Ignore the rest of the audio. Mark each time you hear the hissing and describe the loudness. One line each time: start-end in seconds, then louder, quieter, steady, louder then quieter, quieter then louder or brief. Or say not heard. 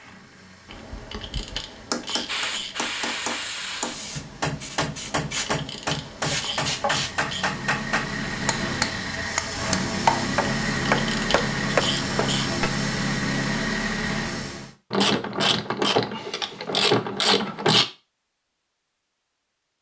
2.2-7.2 quieter then louder.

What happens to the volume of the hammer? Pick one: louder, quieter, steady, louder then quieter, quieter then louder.
louder.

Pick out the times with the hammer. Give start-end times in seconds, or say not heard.
0.7-12.7.